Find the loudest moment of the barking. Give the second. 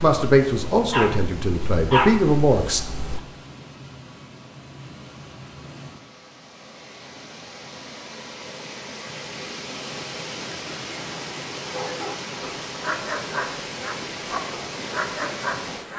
2 s.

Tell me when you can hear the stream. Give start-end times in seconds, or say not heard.
0.0-15.9.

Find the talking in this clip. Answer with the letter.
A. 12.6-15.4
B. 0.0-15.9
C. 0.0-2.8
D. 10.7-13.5
C.